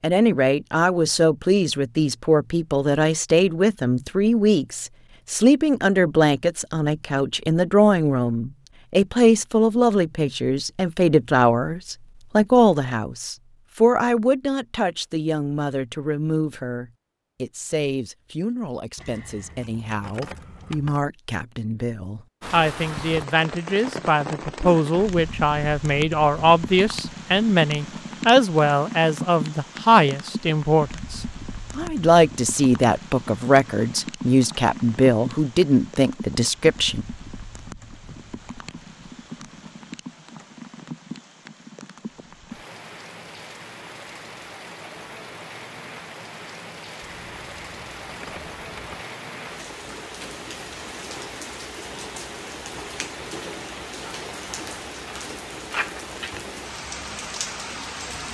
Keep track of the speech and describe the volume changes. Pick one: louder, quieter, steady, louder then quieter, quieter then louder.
quieter then louder.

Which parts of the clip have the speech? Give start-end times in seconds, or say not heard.
0.0-37.0.